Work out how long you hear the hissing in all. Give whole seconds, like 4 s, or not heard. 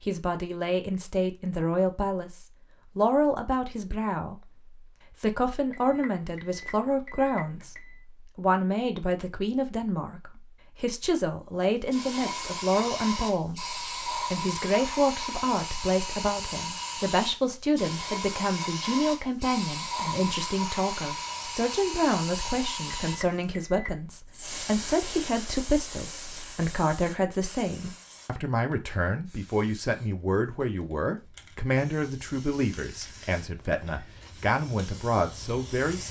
24 s.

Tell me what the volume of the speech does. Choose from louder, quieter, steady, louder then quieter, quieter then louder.
steady.